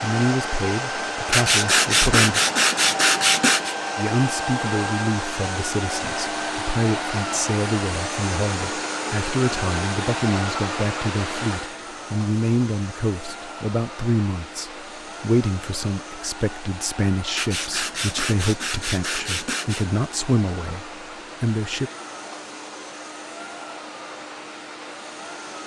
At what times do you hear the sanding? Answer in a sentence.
You can hear the sanding from 1.3 to 3.8 s and from 17.4 to 19.9 s.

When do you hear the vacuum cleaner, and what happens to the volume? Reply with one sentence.
You can hear the vacuum cleaner from 0.0 to 25.6 s, getting quieter.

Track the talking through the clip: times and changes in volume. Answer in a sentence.
You can hear the talking briefly from 0.0 to 2.4 s; and from 4.0 to 21.9 s, at a steady volume.